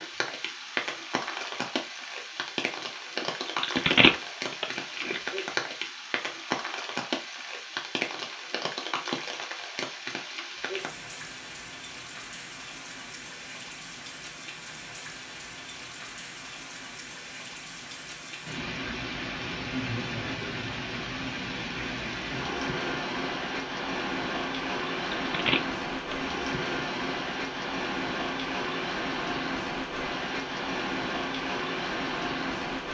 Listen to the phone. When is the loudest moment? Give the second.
4 s.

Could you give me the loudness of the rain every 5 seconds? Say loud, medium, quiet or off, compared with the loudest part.
loud, loud, medium, medium, loud, loud, loud.